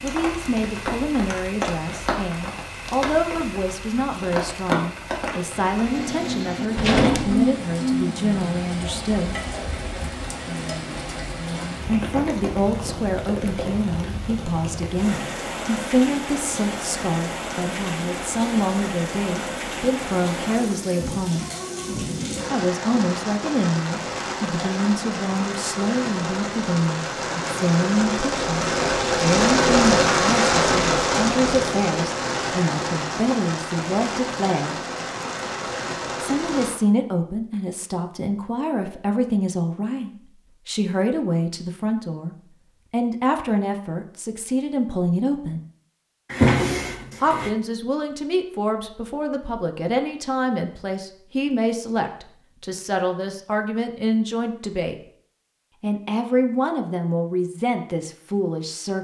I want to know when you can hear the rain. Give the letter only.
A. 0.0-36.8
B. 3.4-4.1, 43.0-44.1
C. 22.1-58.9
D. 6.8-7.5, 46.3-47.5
A.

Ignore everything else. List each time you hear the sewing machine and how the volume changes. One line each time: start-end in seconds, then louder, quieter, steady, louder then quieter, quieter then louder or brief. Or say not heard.
not heard.